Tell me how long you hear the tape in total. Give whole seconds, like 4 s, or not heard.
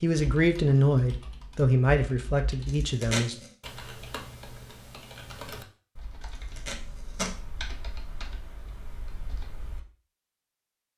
2 s.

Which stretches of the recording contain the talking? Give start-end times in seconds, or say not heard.
0.0-3.4.